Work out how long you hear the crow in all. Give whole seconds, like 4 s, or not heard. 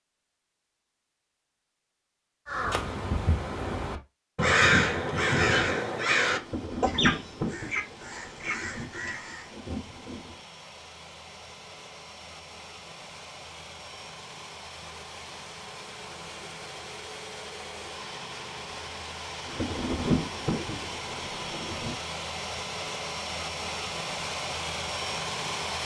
7 s.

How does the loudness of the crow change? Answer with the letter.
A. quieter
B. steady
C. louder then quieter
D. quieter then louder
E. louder
C.